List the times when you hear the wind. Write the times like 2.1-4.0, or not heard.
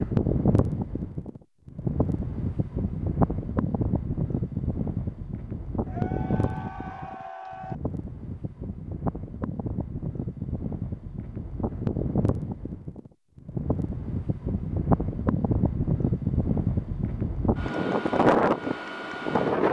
0.0-19.6.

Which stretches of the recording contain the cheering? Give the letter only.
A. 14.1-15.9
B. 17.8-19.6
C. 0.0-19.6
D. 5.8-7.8
D.